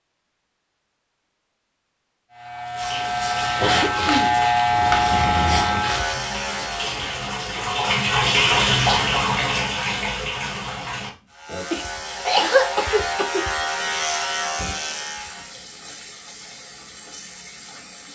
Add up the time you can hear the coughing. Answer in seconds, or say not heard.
4 s.